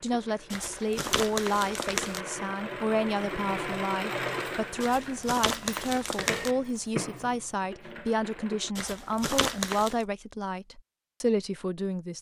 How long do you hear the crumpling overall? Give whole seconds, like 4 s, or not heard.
5 s.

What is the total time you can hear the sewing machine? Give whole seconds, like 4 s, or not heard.
9 s.